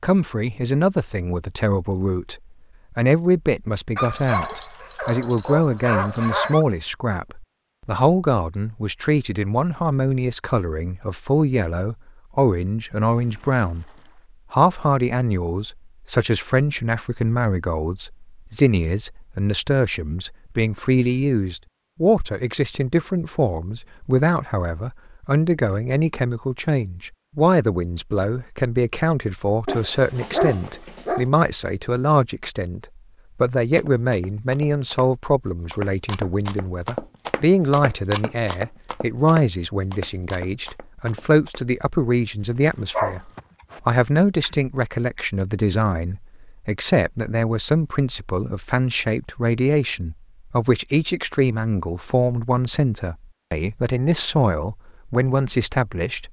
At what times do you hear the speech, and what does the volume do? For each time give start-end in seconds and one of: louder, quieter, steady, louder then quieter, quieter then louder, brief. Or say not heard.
0.0-13.8 steady
14.5-56.2 steady.